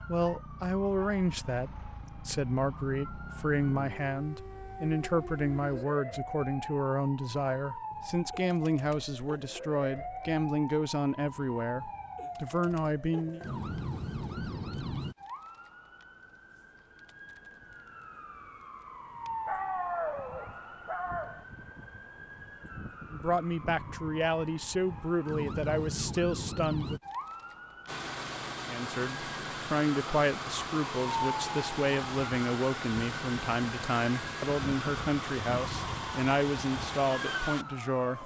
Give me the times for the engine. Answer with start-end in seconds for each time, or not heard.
27.9-38.2.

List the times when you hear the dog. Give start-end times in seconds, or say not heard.
19.4-21.4.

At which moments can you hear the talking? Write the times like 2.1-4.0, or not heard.
0.1-13.4, 23.1-27.0, 28.6-38.2.